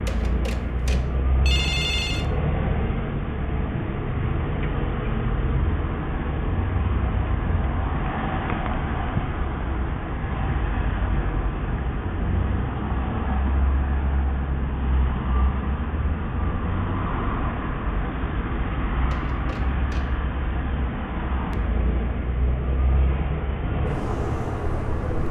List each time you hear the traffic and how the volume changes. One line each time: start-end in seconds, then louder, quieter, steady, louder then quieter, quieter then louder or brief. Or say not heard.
0.0-25.2 steady.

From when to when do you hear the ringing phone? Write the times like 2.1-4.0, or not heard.
0.1-2.2, 19.1-20.1.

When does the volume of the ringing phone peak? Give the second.
2 s.